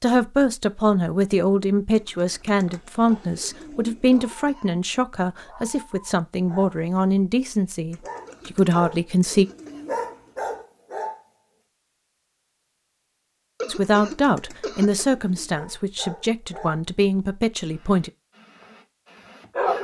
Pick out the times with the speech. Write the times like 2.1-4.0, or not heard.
0.0-9.4, 13.7-18.1.